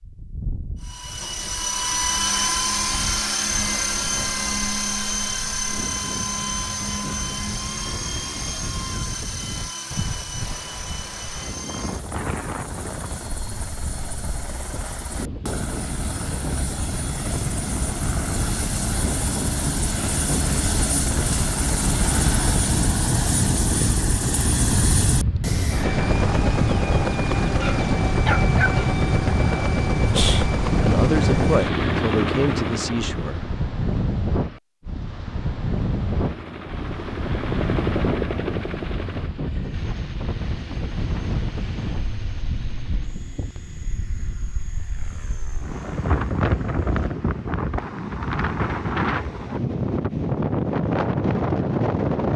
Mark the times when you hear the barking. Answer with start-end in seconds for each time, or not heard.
27.4-28.9.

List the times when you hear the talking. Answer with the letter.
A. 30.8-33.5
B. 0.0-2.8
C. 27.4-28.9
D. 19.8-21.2
A.